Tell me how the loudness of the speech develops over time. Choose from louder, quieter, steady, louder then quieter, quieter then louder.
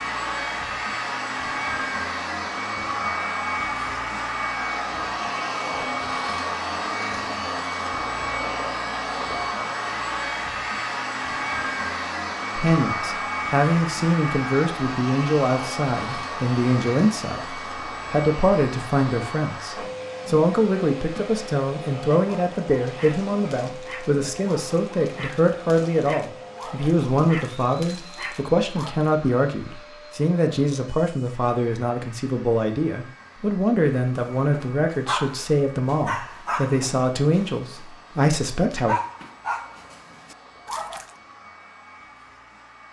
steady.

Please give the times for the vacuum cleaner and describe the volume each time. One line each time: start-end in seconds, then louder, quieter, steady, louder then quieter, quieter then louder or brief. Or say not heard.
0.0-42.8 quieter.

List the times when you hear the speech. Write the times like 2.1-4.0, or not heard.
12.6-39.0.